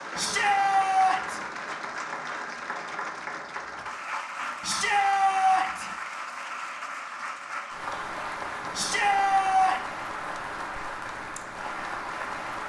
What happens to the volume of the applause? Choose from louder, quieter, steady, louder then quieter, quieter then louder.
steady.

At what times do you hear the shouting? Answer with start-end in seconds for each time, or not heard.
0.1-1.4, 4.6-5.8, 8.8-9.8.